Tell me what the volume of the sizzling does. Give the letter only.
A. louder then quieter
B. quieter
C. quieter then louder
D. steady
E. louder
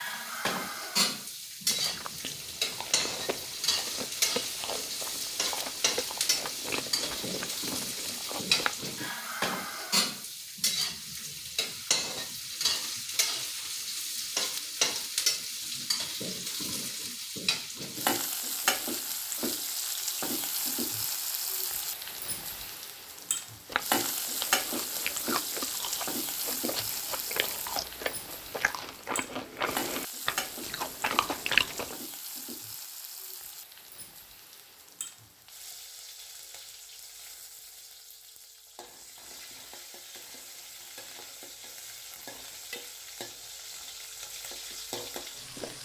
B.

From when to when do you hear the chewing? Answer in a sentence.
You can hear the chewing from 1.7 to 8.9 s and from 23.6 to 31.9 s.